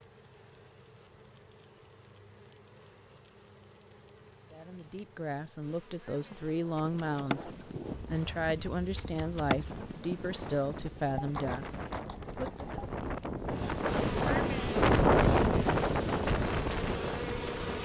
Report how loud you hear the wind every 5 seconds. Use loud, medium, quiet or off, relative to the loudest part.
off, quiet, medium, loud.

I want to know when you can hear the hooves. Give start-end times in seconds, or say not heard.
6.1-12.9.